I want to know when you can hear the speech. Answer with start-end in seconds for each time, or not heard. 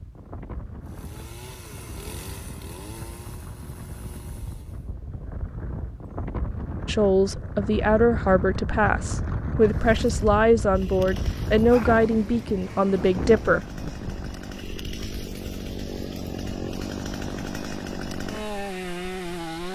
6.8-13.6.